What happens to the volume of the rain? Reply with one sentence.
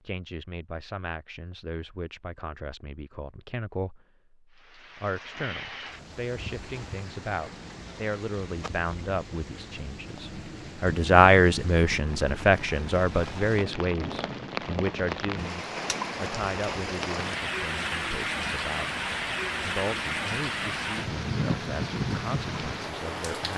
The loudness of the rain goes up.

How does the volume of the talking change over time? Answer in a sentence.
The loudness of the talking goes up, then down.